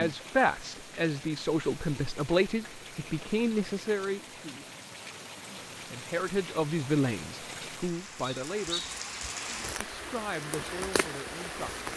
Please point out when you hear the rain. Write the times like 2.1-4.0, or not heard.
0.0-11.9.